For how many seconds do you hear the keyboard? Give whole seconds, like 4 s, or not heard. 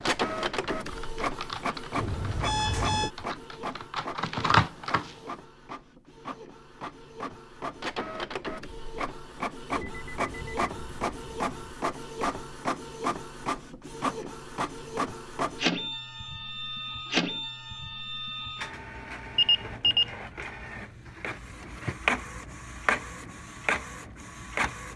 5 s.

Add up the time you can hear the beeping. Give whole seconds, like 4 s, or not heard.
4 s.